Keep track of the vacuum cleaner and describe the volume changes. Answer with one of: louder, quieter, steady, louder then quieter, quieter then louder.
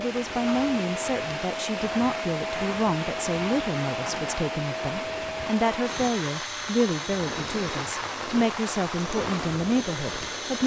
quieter.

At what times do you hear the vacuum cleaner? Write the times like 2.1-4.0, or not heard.
0.0-10.6.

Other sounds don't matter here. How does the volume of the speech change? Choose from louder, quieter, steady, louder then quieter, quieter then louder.
steady.